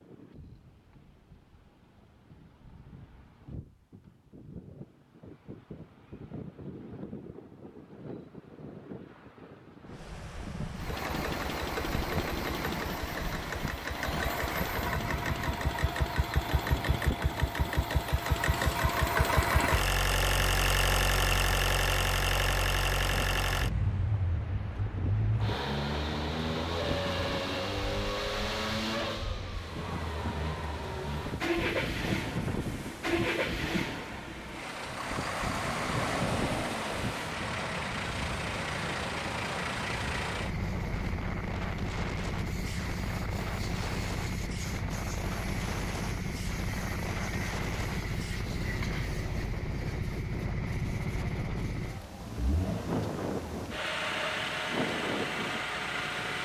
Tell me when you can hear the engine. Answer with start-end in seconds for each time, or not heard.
10.8-56.3.